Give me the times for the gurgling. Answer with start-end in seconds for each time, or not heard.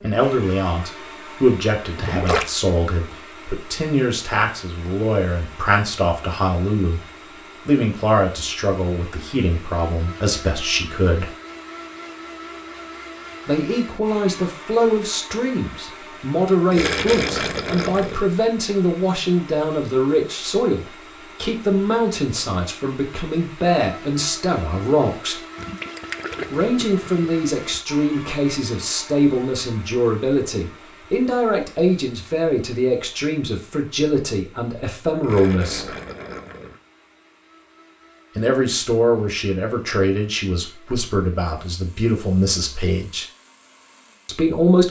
1.9-2.5, 16.7-18.2, 25.6-27.2, 35.2-36.8.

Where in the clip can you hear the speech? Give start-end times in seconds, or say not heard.
0.0-7.0, 7.7-11.3, 13.4-25.4, 26.5-35.9, 38.4-43.2, 44.2-44.8.